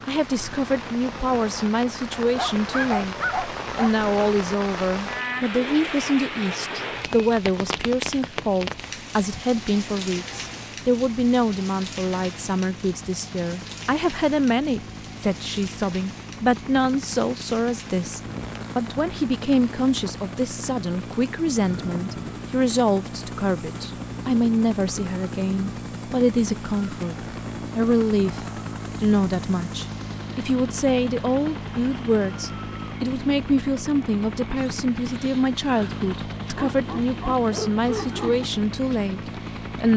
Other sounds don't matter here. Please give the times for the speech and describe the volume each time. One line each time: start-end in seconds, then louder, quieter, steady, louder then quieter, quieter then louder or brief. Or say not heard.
0.0-39.9 steady.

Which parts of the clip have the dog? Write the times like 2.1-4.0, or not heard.
2.4-4.0, 36.5-38.5.